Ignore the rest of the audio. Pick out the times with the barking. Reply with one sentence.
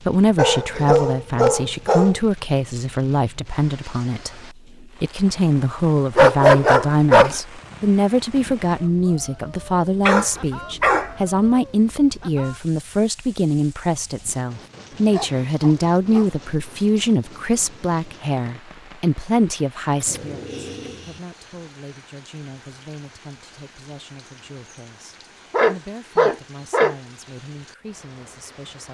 The barking can be heard from 0.3 to 2.2 s, from 6.2 to 7.4 s, from 10.1 to 11.1 s, from 14.9 to 16.4 s, from 20.0 to 21.2 s and from 25.5 to 26.9 s.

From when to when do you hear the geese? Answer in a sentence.
The geese can't be heard in this clip.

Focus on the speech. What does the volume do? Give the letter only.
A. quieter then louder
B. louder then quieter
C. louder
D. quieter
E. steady
D.